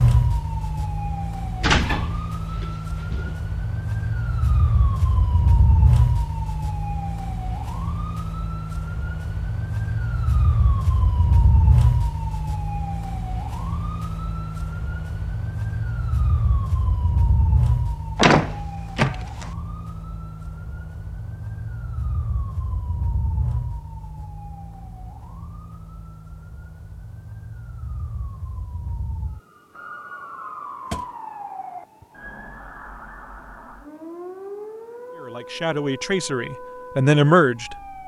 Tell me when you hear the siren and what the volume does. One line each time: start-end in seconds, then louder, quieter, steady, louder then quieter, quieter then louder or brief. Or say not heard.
0.0-38.0 quieter.